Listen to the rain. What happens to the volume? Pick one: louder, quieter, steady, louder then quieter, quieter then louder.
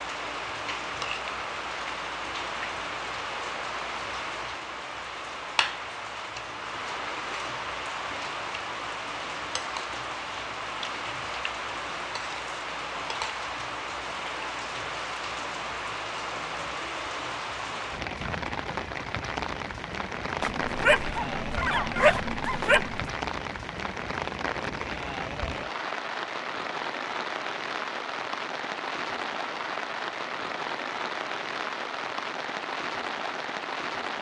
steady.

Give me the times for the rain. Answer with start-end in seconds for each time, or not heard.
0.0-34.1.